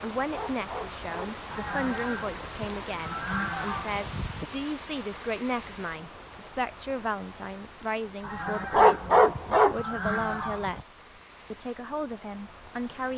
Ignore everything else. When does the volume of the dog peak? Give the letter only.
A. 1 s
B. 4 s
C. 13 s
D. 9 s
D.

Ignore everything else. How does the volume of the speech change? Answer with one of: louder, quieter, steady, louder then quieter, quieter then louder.
steady.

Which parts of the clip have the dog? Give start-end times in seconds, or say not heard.
0.3-1.4, 8.7-9.8.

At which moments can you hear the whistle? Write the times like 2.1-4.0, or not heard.
not heard.